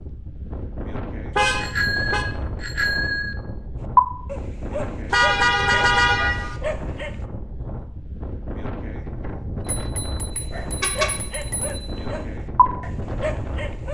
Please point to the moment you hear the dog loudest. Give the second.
4 s.